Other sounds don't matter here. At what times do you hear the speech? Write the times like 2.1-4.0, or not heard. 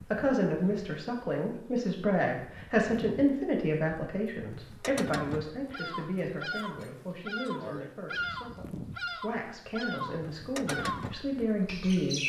0.1-12.2.